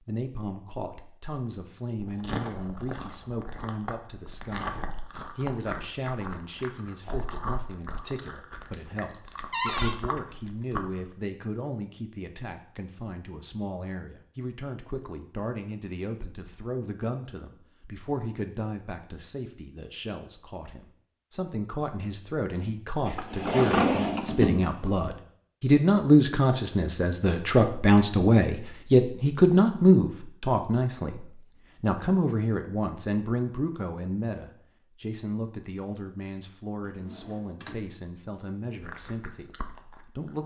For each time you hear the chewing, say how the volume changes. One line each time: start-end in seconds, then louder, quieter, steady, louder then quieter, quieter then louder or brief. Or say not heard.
1.9-11.1 steady
38.8-40.4 brief.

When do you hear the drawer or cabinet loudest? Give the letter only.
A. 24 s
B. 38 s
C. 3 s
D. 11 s
A.